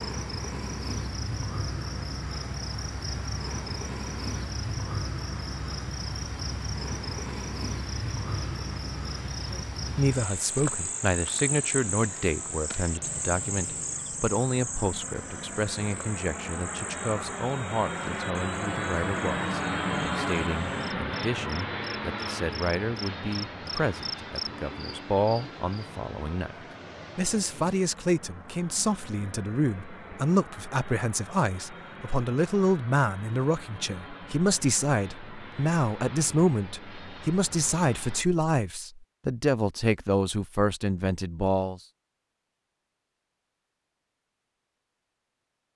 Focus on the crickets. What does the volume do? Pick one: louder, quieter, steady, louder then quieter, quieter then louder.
quieter then louder.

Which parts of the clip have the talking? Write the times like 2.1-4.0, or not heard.
9.5-26.6, 27.1-41.8.